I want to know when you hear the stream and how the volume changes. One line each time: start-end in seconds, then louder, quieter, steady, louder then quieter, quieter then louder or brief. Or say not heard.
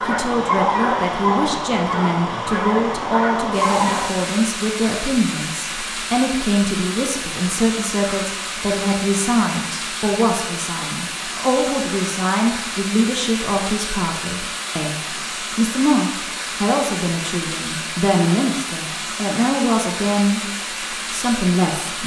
0.0-22.0 steady.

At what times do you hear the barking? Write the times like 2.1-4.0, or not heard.
0.0-4.1.